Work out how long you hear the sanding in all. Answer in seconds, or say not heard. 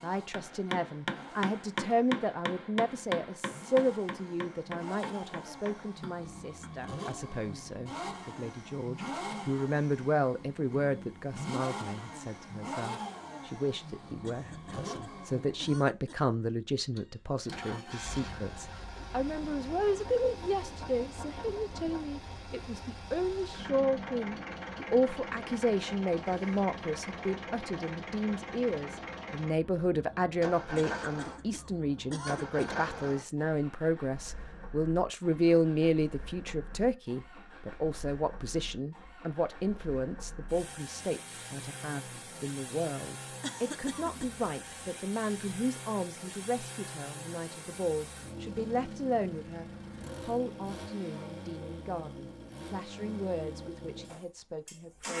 not heard.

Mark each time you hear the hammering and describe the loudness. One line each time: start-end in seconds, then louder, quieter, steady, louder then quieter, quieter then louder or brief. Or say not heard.
0.3-6.7 quieter.